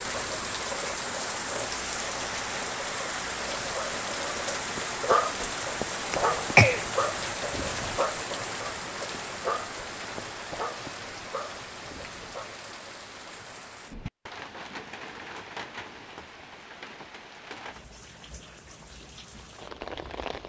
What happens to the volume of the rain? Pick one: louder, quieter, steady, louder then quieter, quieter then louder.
quieter.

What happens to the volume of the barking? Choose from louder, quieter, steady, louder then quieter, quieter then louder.
quieter.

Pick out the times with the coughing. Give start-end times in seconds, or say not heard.
6.1-6.8.